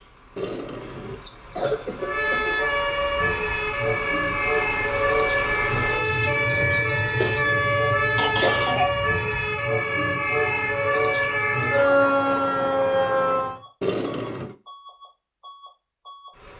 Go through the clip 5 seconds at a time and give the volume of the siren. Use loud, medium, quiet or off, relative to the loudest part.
loud, loud, loud, off.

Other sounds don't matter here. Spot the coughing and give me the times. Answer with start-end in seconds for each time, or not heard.
0.3-2.7, 7.2-9.0, 13.8-14.6.